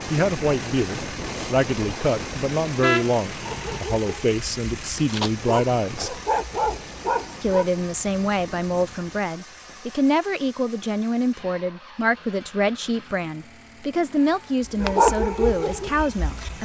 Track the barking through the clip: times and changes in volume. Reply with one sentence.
The barking can be heard from 3.4 to 7.7 s, getting louder; and briefly from 14.7 to 16.6 s.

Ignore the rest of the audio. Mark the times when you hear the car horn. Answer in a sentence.
You can hear the car horn from 2.8 to 3.8 s.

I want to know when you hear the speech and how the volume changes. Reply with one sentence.
You can hear the speech from 0.1 to 6.2 s, at a steady volume; and from 7.4 to 16.6 s, at a steady volume.